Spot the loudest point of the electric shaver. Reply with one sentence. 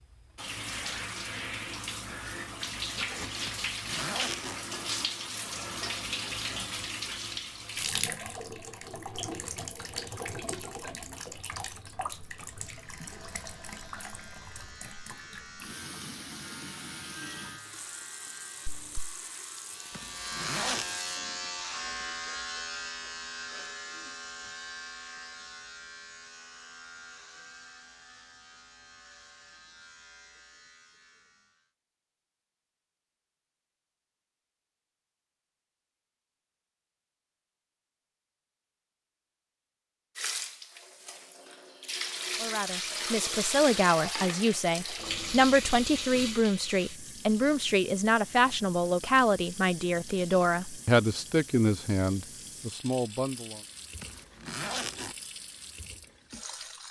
The volume of the electric shaver peaks at 21 seconds.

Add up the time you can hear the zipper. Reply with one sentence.
You can hear the zipper for 3 seconds altogether.